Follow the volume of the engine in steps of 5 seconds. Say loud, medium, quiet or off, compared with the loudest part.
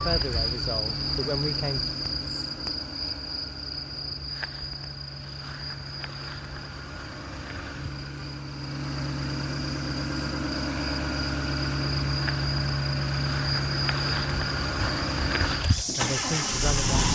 medium, medium, loud, loud.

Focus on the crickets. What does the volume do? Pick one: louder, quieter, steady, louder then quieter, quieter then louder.
quieter then louder.